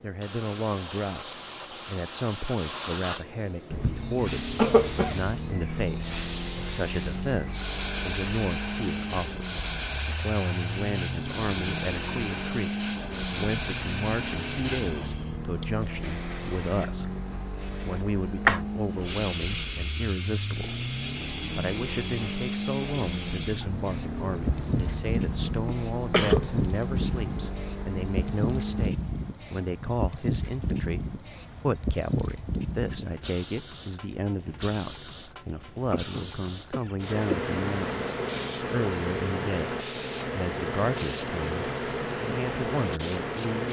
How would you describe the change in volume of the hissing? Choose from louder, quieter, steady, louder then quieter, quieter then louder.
steady.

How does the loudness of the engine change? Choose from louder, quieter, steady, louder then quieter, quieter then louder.
steady.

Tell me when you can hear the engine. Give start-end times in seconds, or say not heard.
3.6-28.9.